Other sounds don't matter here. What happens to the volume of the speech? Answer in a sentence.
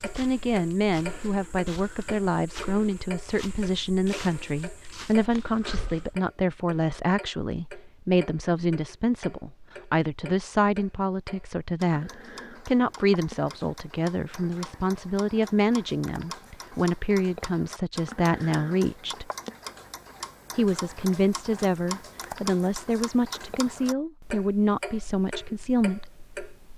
The loudness of the speech stays about the same.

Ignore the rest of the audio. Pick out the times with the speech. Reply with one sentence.
You can hear the speech from 0.0 to 19.2 s and from 20.6 to 26.1 s.